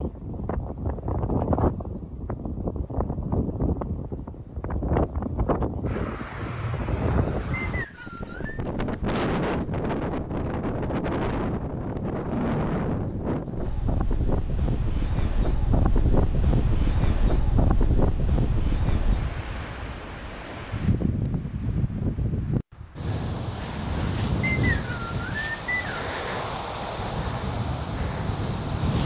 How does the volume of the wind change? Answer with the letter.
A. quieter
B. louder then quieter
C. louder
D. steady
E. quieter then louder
D.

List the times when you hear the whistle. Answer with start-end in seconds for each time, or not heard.
7.5-8.6, 24.4-25.9.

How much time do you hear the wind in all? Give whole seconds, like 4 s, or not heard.
29 s.